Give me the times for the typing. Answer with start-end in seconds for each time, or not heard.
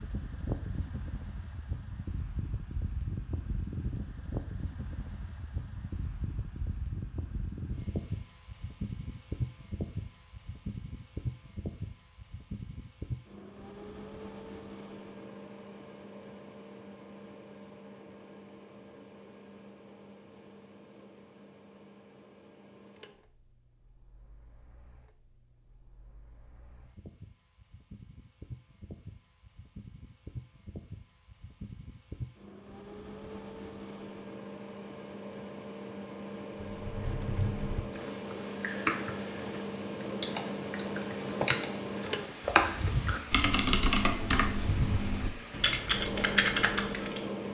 36.8-47.2.